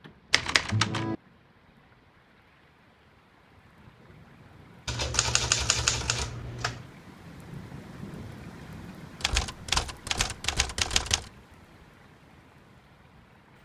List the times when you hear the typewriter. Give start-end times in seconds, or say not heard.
0.3-1.1, 4.8-6.8, 9.2-11.3.